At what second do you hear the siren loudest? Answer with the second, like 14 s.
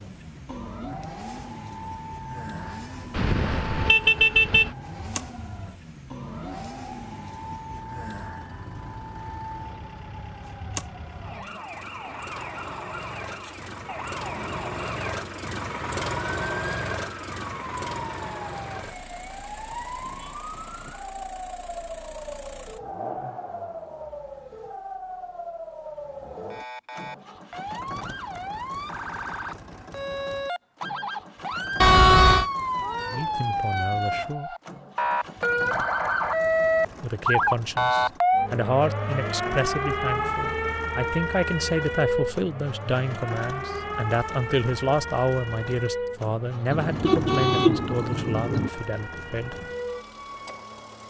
38 s.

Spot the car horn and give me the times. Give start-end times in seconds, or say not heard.
3.1-4.7, 31.8-32.5, 46.7-48.7.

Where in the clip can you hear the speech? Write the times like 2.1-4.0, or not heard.
33.0-34.5, 37.0-49.6.